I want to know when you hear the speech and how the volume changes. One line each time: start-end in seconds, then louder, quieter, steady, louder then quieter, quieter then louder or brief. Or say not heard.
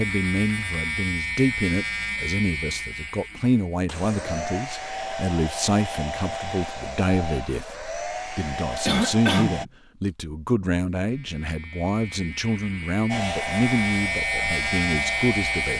0.0-15.7 steady.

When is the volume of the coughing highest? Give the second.
9 s.